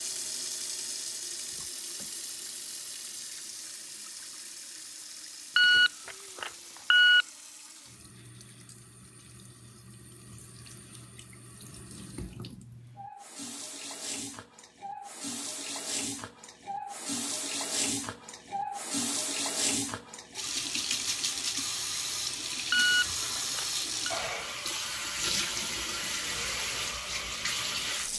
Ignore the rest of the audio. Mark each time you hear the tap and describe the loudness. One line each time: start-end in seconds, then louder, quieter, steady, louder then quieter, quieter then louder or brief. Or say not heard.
0.0-28.1 quieter then louder.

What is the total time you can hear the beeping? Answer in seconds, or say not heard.
3 s.